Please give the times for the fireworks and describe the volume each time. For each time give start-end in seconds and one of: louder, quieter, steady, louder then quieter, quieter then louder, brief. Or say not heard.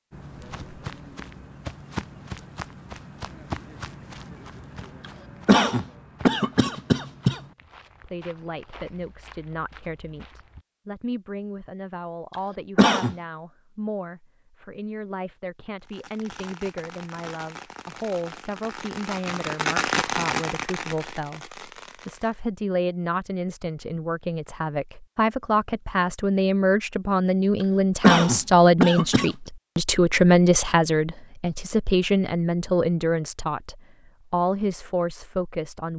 15.8-22.4 louder then quieter.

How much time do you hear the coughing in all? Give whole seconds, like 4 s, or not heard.
4 s.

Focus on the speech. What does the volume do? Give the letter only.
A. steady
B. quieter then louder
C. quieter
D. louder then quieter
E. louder
E.